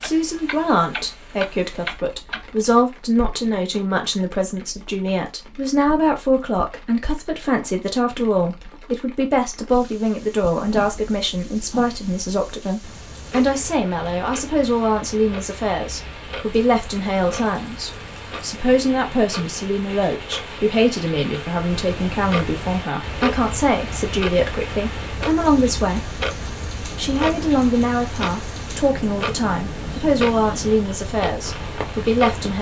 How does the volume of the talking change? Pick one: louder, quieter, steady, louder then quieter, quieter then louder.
steady.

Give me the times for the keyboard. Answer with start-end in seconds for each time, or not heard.
not heard.